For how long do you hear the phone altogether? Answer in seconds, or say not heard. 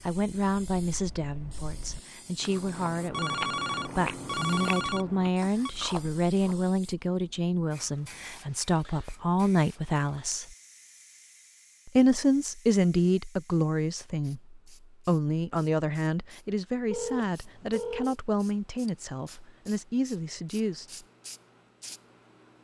4 s.